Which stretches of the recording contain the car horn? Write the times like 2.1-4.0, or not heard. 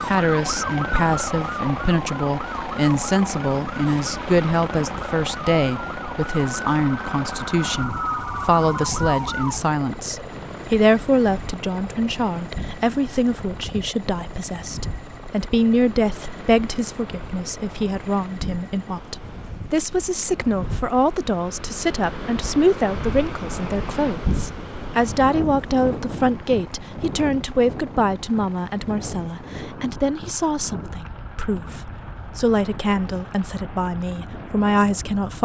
not heard.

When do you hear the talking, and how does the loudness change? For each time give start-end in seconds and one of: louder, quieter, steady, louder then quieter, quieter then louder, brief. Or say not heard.
0.1-35.4 steady.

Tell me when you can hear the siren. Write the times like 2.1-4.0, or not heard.
0.0-9.6.